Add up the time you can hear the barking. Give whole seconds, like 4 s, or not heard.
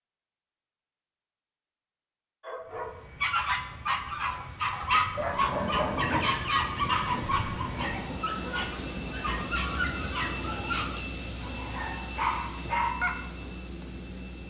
11 s.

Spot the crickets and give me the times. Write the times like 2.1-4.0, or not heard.
5.7-14.2.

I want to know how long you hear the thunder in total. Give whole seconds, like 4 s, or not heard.
3 s.